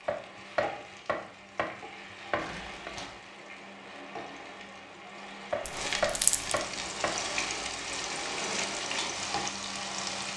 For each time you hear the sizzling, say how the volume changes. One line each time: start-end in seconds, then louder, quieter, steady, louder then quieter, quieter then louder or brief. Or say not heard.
0.0-10.3 louder.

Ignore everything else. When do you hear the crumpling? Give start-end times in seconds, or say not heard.
2.4-3.1, 5.7-6.6.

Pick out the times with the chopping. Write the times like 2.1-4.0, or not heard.
0.1-2.9, 5.5-7.2.